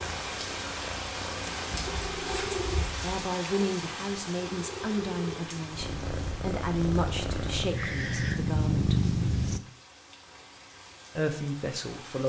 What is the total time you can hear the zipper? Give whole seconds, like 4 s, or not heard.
2 s.